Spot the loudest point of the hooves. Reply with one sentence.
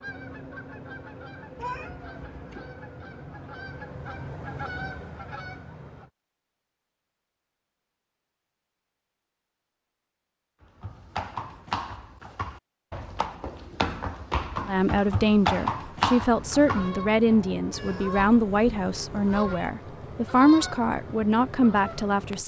The loudest moment of the hooves is at 16 seconds.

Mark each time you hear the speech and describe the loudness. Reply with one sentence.
You can hear the speech from 14.7 to 22.4 s, at a steady volume.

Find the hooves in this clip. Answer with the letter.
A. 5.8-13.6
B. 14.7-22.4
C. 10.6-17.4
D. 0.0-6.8
C.